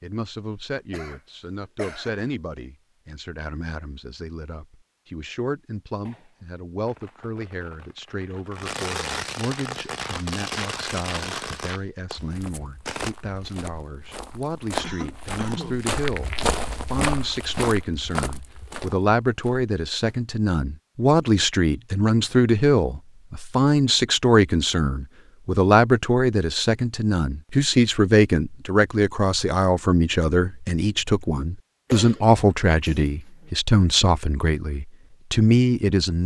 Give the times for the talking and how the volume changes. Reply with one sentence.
The talking can be heard from 0.0 to 36.2 s, getting louder.